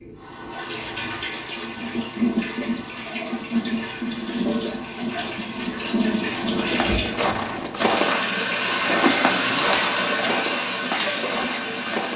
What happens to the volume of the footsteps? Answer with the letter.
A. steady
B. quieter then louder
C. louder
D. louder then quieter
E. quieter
E.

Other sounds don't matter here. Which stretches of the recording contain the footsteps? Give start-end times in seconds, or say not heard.
6.8-12.1.